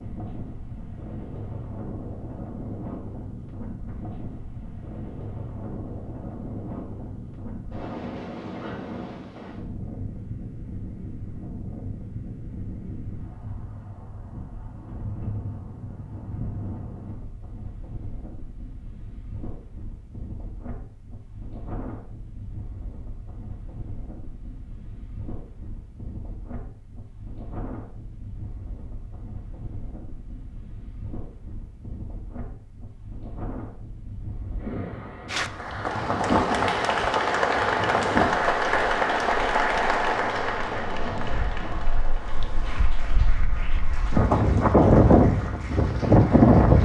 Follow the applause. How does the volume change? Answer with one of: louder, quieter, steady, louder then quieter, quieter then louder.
quieter.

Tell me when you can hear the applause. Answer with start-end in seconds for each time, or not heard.
35.2-46.8.